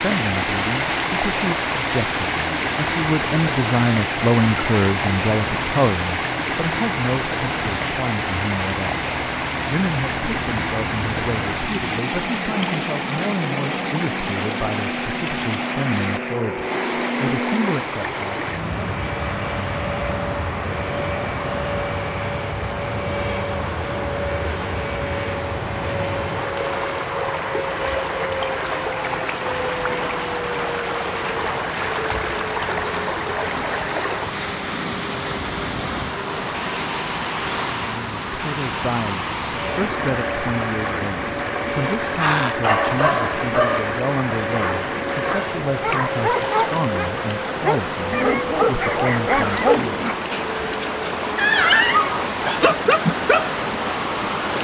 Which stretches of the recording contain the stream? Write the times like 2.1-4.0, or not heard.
0.0-54.5.